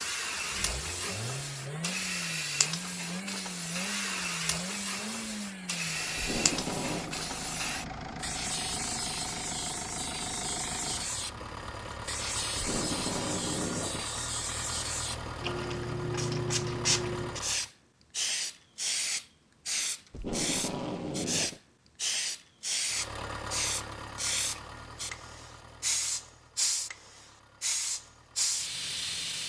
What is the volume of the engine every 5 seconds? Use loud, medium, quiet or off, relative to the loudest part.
loud, loud, loud, loud, loud, quiet.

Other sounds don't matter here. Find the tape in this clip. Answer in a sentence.
The tape can be heard from 6.2 to 7.2 s, from 12.6 to 14.1 s and from 20.1 to 21.6 s.